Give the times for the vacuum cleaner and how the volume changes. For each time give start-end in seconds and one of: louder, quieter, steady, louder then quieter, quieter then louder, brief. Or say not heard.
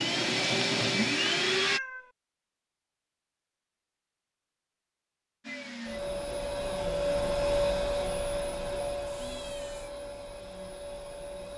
0.0-1.8 brief
5.4-11.5 louder then quieter.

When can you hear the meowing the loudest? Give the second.
2 s.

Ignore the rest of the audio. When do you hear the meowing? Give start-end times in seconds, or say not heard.
1.6-2.1, 9.1-9.9.